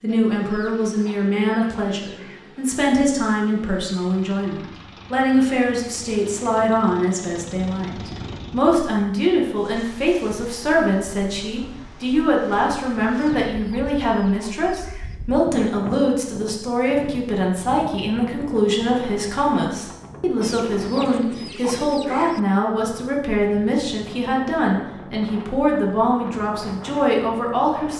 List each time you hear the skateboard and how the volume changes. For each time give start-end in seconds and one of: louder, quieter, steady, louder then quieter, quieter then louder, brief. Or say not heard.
not heard.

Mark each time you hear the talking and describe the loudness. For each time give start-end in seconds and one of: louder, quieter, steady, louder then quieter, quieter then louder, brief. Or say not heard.
0.0-27.9 steady.